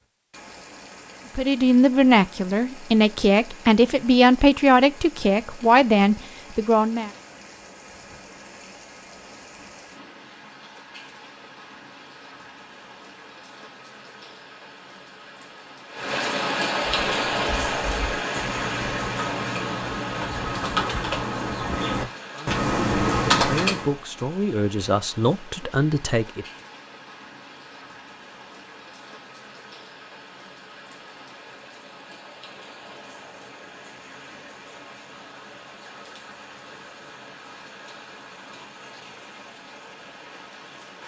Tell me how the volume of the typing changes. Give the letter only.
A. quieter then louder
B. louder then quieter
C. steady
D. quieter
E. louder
E.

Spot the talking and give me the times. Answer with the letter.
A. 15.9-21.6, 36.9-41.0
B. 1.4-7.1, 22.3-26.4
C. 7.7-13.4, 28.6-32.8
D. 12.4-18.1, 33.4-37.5
B.